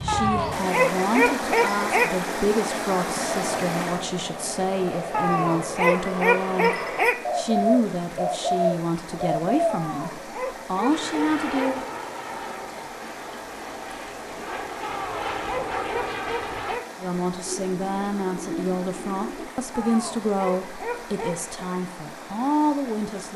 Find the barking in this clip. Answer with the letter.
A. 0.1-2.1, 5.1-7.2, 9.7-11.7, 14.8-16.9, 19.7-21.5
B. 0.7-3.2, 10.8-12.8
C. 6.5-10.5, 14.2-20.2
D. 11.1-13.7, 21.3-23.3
A.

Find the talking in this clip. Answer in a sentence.
You can hear the talking from 0.0 to 11.8 s and from 17.0 to 23.3 s.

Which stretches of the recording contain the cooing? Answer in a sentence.
The cooing can be heard from 7.2 to 9.8 s and from 17.4 to 19.4 s.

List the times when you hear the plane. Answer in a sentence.
You can hear the plane from 3.1 to 7.1 s and from 10.8 to 16.8 s.